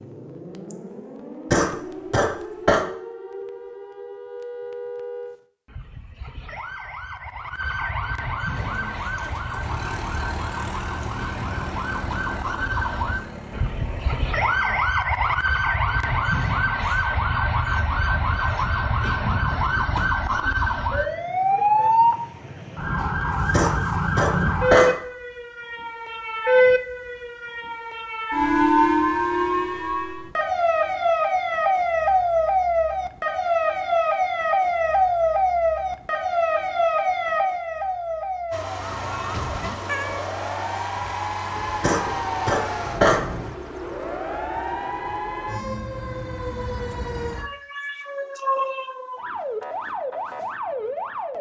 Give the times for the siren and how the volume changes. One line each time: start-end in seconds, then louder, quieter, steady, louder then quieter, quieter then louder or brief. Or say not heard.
0.0-51.3 louder then quieter.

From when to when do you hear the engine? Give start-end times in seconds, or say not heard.
8.5-14.9, 38.5-43.5.